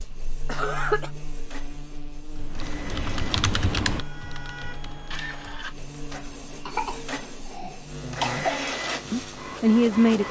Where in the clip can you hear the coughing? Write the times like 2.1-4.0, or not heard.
0.5-1.1, 6.7-8.6.